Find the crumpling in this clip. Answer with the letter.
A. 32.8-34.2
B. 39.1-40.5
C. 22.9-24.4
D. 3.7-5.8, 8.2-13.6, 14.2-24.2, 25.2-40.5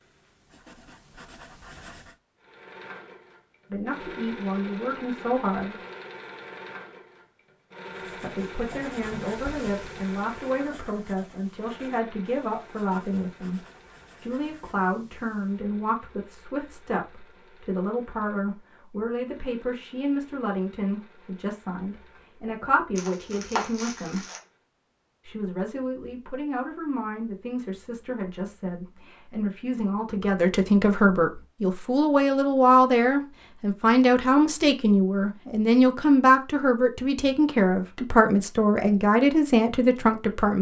C.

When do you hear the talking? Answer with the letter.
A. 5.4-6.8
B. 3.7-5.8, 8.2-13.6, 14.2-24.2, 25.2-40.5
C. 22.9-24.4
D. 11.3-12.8
B.